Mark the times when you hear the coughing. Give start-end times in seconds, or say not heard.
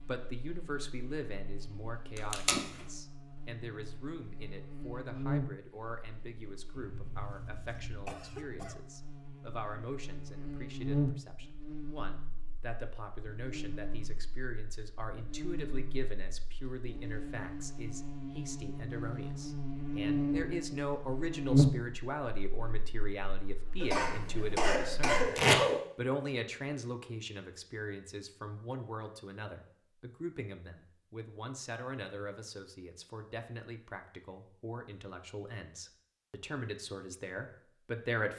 6.8-8.8, 23.8-25.8.